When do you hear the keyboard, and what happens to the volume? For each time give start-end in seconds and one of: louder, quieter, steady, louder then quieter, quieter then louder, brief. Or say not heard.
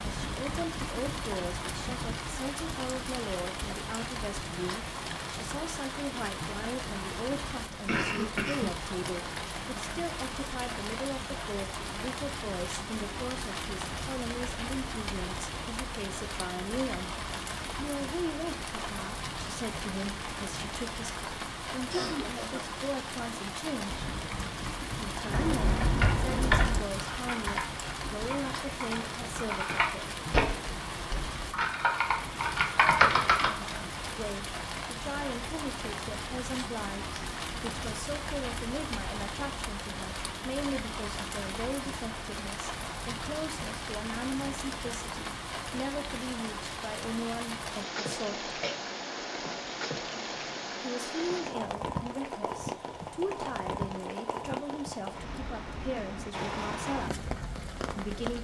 25.2-33.8 quieter then louder.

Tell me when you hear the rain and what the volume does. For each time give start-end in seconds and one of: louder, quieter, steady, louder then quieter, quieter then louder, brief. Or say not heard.
0.0-58.4 steady.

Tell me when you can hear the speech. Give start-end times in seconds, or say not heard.
0.0-24.1, 24.9-30.1, 34.1-48.5, 50.8-57.2, 58.0-58.4.